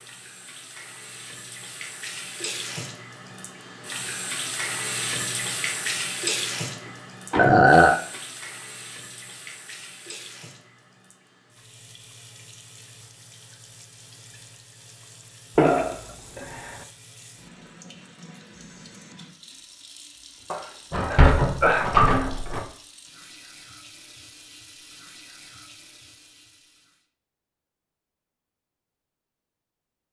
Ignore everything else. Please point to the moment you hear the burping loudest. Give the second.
8 s.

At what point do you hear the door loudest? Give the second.
22 s.